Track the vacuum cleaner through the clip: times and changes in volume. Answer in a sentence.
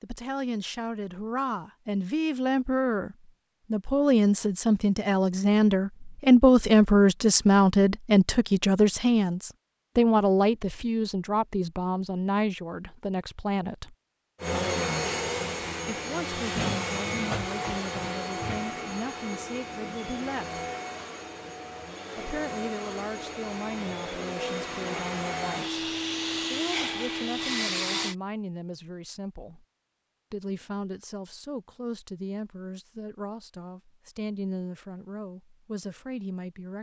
You can hear the vacuum cleaner from 14.4 to 28.1 s, getting quieter then louder.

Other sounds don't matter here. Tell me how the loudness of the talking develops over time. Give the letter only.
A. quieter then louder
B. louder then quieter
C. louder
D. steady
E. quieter
E.